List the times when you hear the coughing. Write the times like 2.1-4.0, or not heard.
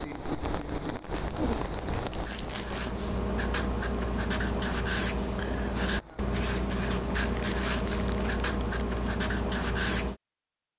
not heard.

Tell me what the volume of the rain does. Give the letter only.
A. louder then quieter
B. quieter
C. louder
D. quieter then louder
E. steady
B.